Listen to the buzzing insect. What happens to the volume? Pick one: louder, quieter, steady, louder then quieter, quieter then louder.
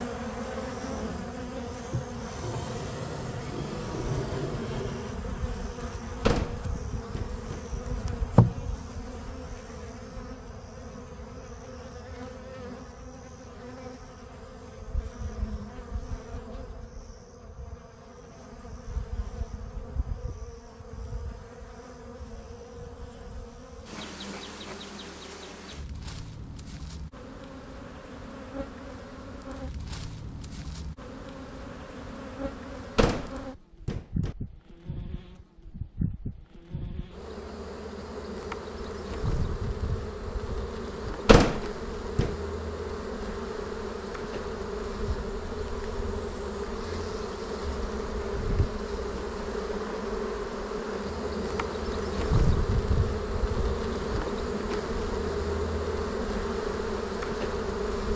quieter then louder.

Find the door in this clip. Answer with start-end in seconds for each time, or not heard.
6.2-7.6, 33.0-34.4, 41.2-42.3.